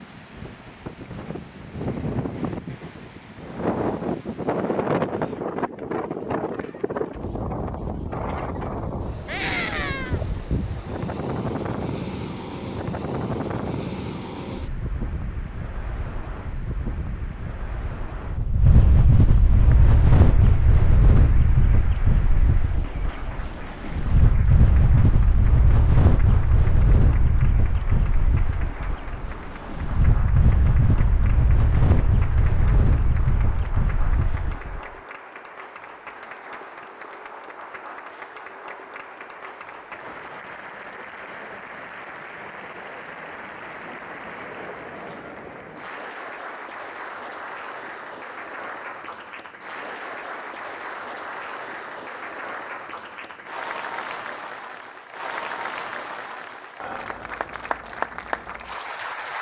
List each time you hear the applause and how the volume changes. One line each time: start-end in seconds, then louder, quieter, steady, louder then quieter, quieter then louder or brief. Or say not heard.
19.6-59.3 louder.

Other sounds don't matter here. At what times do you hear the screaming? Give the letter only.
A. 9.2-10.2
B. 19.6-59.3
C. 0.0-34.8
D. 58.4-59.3
A.